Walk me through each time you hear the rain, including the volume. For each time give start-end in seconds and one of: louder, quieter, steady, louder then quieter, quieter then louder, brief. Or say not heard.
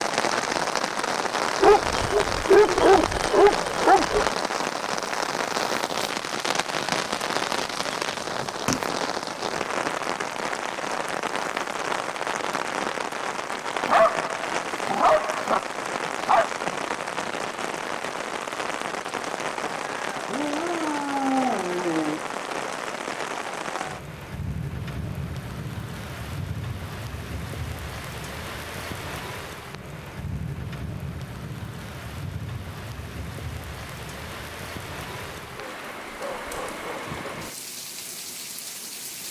0.0-39.2 quieter.